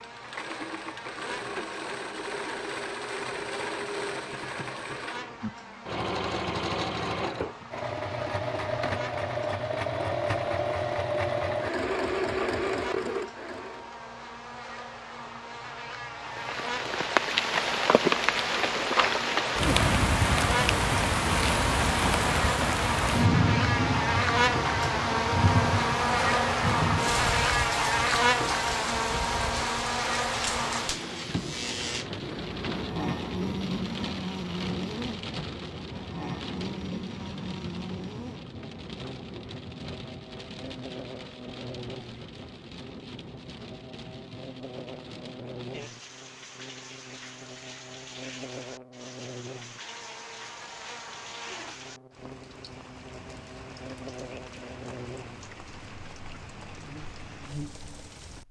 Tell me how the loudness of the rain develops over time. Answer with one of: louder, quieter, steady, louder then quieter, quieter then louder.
quieter.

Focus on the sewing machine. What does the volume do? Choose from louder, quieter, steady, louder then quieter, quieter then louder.
louder.